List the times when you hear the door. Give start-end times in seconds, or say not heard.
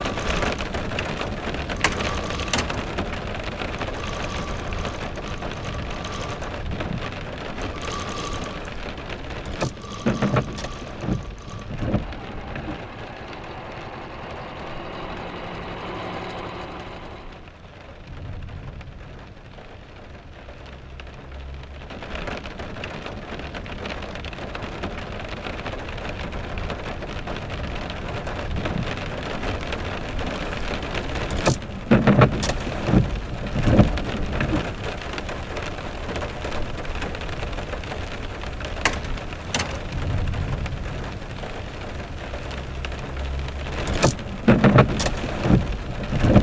1.8-2.9, 38.9-39.9.